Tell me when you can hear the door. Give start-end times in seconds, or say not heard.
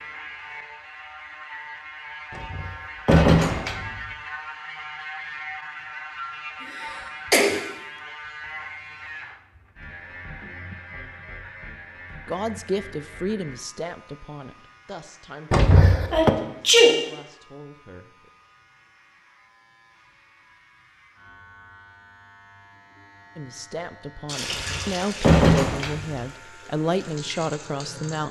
2.4-4.0, 15.5-16.3, 24.5-26.2.